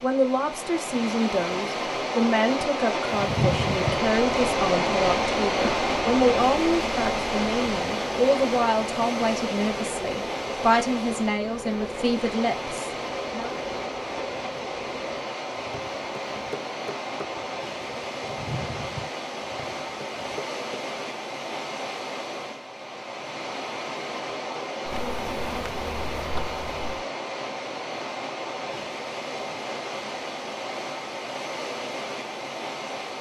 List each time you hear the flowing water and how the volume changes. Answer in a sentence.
The flowing water can be heard from 0.0 to 33.1 s, getting quieter.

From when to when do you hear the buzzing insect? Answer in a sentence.
The buzzing insect can be heard from 3.1 to 20.6 s and from 24.9 to 27.1 s.